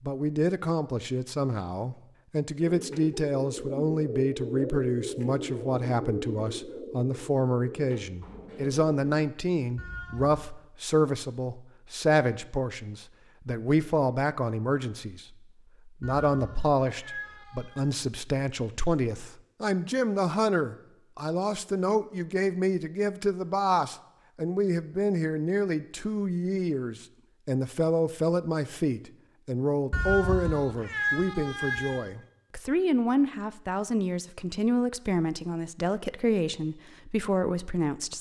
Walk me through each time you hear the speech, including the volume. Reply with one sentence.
The speech can be heard from 0.0 to 38.1 s, at a steady volume.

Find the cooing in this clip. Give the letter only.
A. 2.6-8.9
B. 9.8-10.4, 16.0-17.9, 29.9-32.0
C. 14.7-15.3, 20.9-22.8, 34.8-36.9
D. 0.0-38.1
A.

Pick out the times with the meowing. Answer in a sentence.
You can hear the meowing from 9.8 to 10.4 s, from 16.0 to 17.9 s and from 29.9 to 32.0 s.